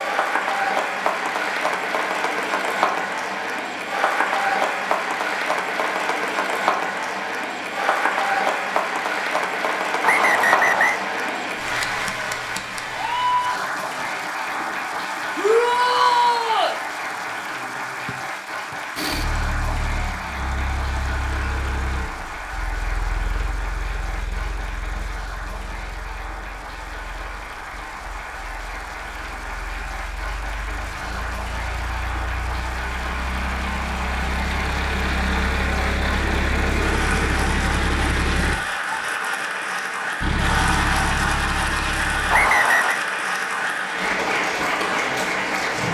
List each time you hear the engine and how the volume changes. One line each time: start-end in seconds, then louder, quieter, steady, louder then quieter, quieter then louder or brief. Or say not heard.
18.9-38.6 quieter then louder
40.2-42.5 brief.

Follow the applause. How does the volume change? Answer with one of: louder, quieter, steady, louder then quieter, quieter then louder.
quieter then louder.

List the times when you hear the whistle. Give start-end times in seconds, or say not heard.
10.0-11.0, 18.1-18.8, 42.3-43.0.